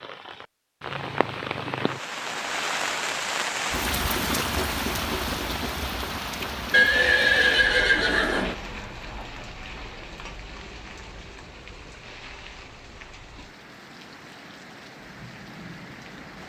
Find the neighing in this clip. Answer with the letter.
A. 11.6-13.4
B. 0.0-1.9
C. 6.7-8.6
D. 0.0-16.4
C.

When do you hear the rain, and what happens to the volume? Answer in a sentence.
You can hear the rain from 0.0 to 16.4 s, getting quieter.